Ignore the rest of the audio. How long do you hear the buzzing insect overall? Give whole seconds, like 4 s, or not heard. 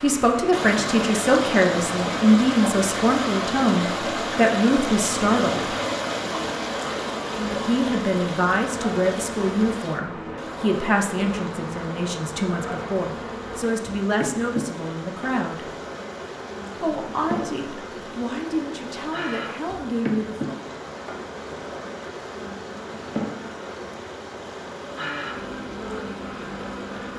27 s.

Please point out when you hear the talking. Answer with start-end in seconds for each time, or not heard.
0.0-5.8, 7.5-15.8, 16.8-20.6.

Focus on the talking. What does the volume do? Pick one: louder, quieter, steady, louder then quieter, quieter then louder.
quieter.